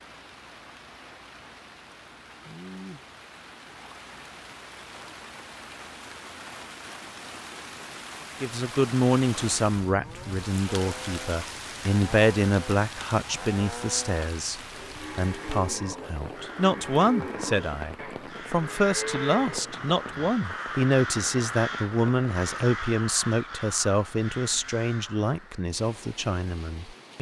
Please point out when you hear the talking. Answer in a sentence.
You can hear the talking from 8.4 to 27.1 s.